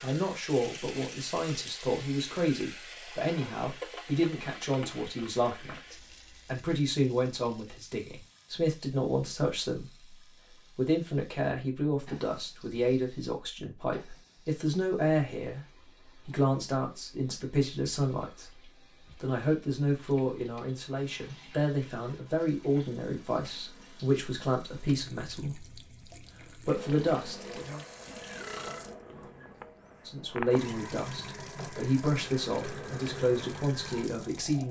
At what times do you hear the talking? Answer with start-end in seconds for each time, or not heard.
0.0-25.8, 26.6-27.9, 30.1-34.6.